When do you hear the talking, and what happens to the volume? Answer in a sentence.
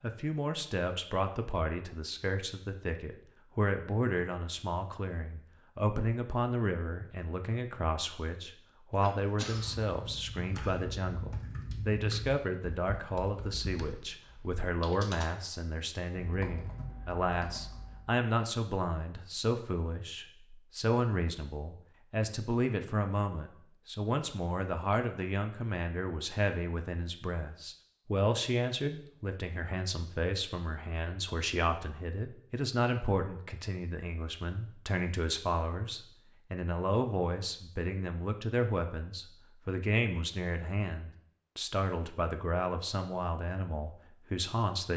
You can hear the talking from 0.0 to 44.9 s, at a steady volume.